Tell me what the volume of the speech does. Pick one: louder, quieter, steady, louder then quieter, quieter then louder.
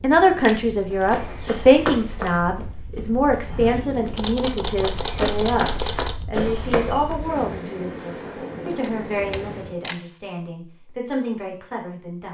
quieter.